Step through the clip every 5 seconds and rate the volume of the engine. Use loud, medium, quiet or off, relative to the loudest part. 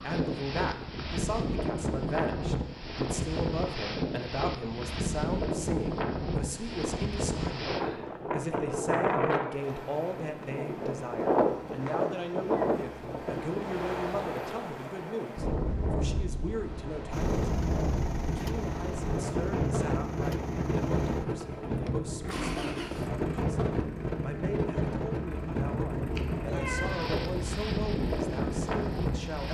off, off, off, loud, loud, medium.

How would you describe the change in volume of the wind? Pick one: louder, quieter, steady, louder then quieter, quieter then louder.
steady.